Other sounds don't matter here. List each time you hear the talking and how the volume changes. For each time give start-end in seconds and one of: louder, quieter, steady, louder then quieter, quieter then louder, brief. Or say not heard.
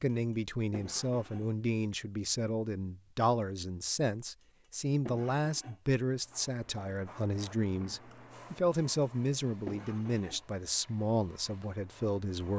0.0-12.5 steady.